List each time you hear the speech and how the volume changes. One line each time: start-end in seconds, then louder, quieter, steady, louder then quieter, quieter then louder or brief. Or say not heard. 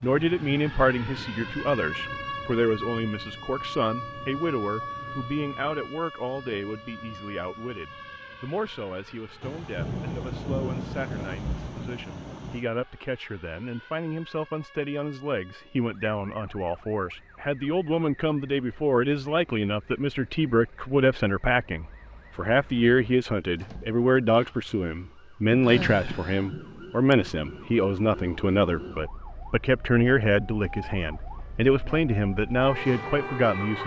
0.0-33.8 quieter then louder.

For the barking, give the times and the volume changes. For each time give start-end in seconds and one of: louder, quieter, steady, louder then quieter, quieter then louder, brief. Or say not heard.
not heard.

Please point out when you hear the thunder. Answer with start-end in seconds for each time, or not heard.
9.4-12.7, 25.6-27.6.